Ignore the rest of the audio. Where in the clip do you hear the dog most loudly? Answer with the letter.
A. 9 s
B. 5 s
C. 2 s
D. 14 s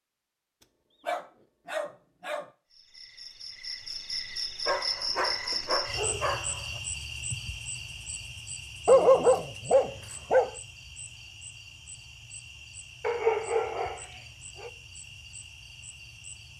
A.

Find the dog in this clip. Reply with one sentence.
The dog can be heard from 1.1 to 2.5 s, from 4.7 to 6.8 s, from 8.8 to 10.5 s and from 13.0 to 14.7 s.